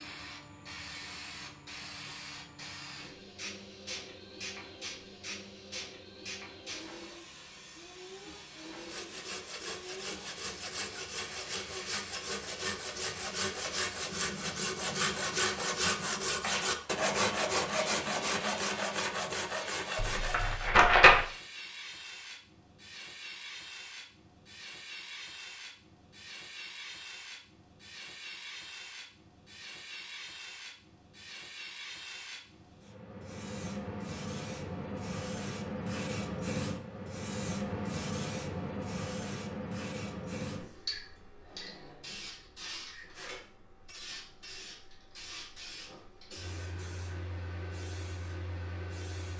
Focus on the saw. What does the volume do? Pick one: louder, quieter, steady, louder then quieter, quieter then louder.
louder.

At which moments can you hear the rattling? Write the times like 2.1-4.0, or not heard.
19.9-21.2.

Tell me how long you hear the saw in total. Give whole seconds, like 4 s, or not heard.
12 s.